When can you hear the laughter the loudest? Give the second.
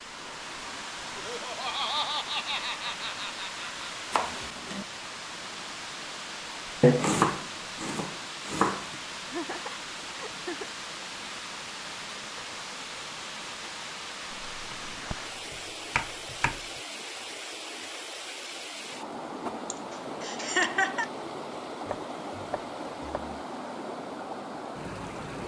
21 s.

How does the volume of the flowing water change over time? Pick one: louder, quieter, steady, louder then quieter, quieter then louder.
steady.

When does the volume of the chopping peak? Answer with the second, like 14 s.
7 s.